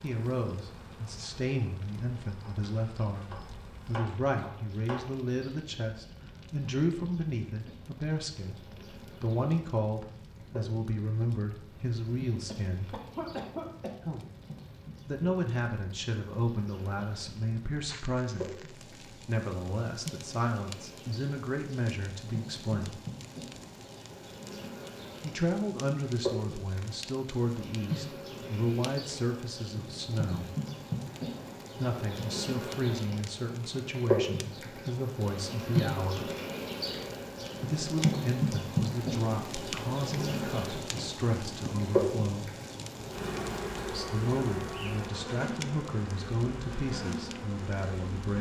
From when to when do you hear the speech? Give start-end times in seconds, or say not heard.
0.0-13.0, 15.1-23.0, 25.2-30.5, 31.8-36.3, 37.7-42.5, 43.9-48.3.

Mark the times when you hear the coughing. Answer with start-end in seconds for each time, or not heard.
12.4-14.3.